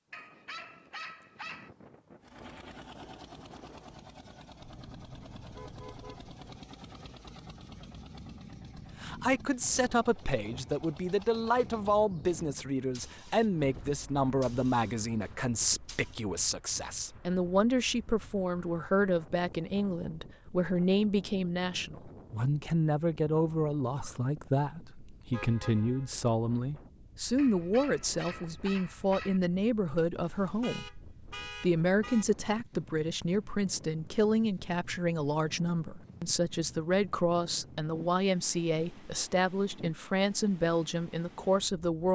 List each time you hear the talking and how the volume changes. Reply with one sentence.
The talking can be heard from 9.0 to 42.1 s, at a steady volume.